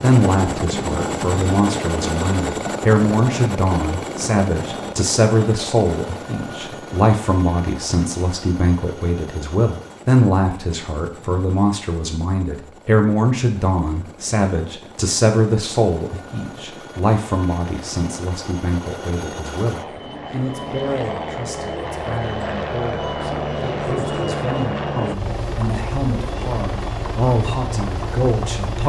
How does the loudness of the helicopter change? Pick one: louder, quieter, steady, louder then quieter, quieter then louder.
quieter then louder.